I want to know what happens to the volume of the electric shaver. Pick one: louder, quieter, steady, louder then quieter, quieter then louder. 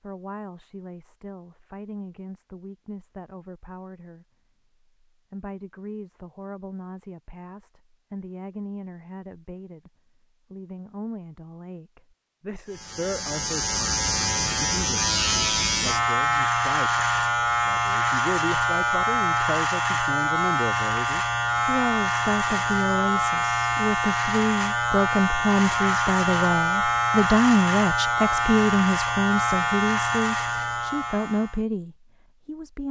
steady.